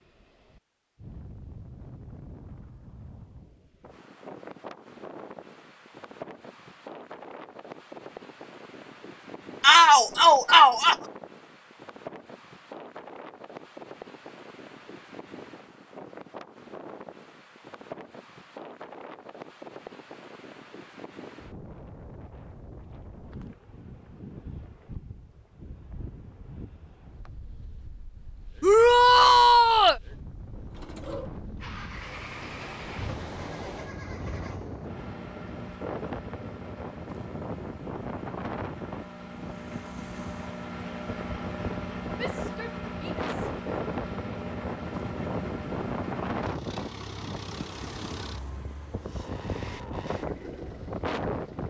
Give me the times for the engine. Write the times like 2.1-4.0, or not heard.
30.7-51.6.